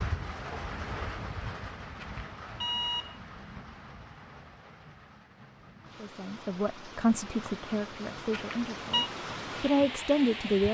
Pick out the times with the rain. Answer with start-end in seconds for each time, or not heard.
0.0-10.6.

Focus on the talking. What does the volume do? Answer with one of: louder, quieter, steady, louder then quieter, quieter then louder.
quieter then louder.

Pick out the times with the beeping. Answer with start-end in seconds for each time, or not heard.
2.0-3.2, 8.3-9.1.